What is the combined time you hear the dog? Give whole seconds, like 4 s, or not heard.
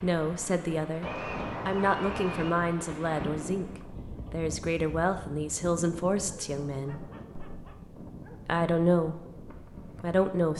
4 s.